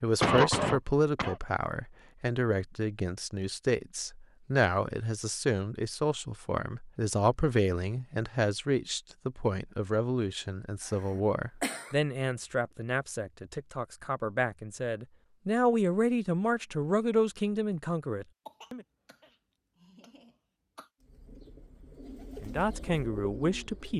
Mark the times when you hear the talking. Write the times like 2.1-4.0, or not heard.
0.0-18.9, 22.4-23.9.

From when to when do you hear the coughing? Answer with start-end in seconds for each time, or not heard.
0.2-1.4, 10.8-11.9, 18.4-20.9.